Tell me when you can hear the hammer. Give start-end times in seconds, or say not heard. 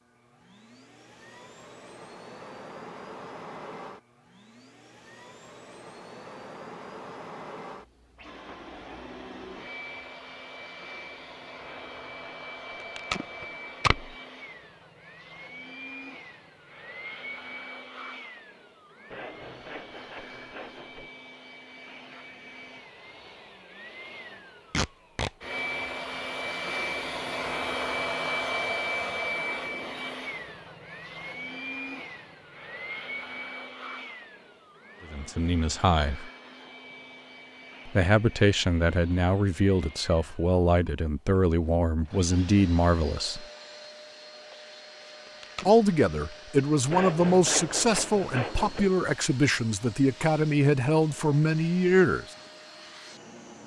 not heard.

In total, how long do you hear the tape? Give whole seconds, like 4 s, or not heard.
3 s.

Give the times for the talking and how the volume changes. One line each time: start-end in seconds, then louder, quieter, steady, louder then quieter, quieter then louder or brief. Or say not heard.
35.1-36.3 brief
37.9-43.5 steady
45.6-52.2 steady.